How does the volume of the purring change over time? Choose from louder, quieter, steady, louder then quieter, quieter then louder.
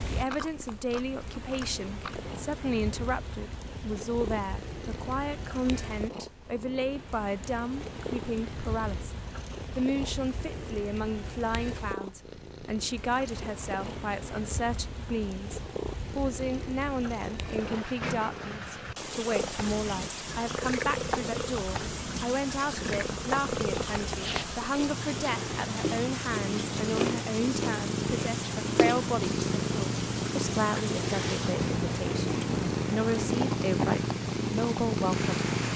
louder.